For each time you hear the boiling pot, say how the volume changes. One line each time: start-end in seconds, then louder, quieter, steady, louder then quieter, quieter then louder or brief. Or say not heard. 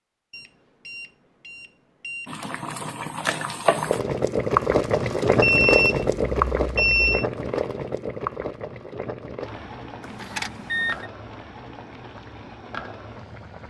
2.2-13.6 quieter.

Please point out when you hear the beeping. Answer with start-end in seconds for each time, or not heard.
0.3-2.3, 5.4-7.2, 10.0-11.1.